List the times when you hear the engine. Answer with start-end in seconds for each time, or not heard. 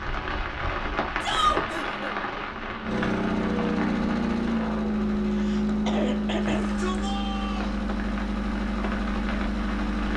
0.0-10.1.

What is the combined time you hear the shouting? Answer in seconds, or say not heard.
2 s.